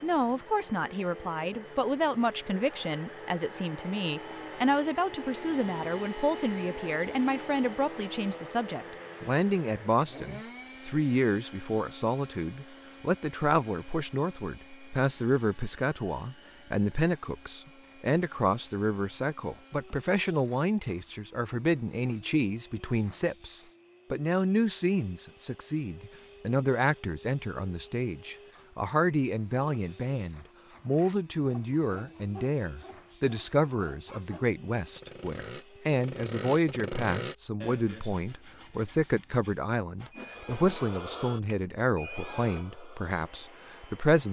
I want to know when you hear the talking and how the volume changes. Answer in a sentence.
The talking can be heard from 0.0 to 44.2 s, at a steady volume.